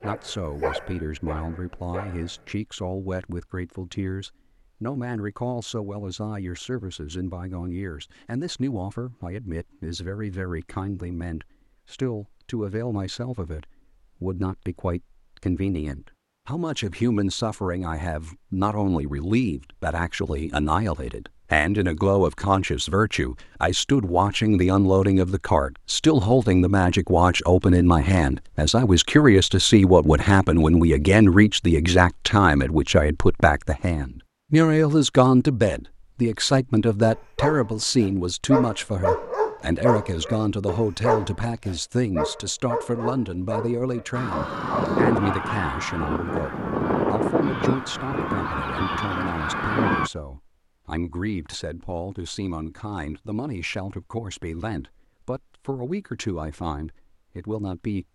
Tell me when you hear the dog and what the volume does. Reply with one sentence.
The dog can be heard briefly from 0.0 to 2.5 s; and from 37.0 to 45.0 s, getting quieter.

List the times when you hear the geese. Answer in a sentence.
You can hear the geese from 44.1 to 50.1 s.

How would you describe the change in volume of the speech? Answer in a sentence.
The loudness of the speech goes up, then down.